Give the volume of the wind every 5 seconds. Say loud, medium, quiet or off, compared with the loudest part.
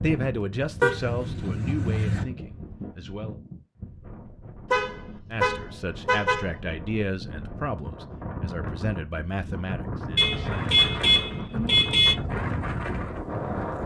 medium, medium, loud.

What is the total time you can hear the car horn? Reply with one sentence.
The car horn can be heard for 5 seconds in total.